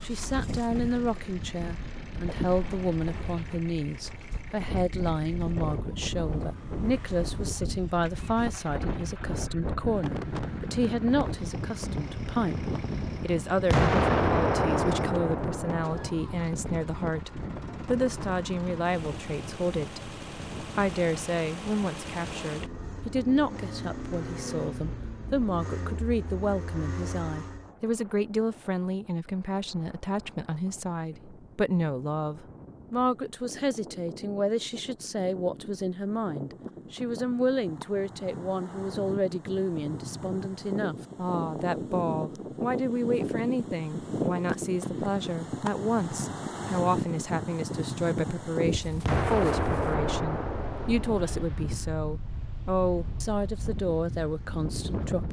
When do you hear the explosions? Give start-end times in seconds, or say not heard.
13.7-16.1, 49.0-51.5.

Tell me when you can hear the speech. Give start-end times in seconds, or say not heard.
0.0-55.2.